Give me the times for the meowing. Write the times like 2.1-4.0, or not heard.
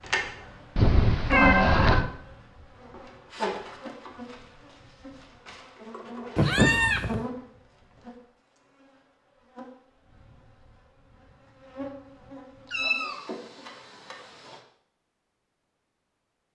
0.8-2.0, 6.3-7.2, 12.7-13.7.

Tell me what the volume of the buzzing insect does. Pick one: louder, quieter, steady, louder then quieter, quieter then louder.
quieter then louder.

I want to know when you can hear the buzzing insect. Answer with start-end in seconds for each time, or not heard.
0.0-14.6.